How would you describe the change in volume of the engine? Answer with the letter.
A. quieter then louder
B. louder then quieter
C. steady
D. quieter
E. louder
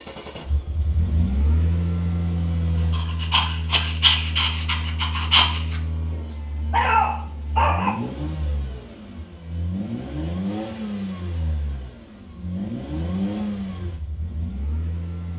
A.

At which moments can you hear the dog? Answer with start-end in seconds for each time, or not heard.
2.8-8.0.